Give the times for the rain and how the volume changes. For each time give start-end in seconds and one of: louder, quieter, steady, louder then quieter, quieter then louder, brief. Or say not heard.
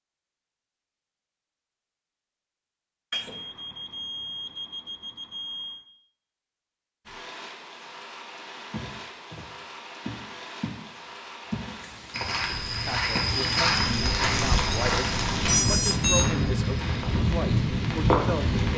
7.0-18.7 louder.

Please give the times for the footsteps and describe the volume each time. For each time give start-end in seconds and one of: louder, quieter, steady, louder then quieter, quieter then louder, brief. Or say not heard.
8.7-17.1 louder then quieter.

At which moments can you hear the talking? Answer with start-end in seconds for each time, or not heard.
12.8-18.7.